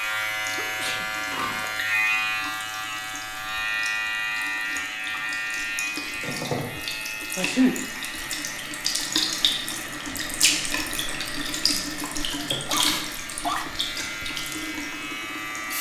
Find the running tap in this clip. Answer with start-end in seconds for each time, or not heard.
0.0-15.7.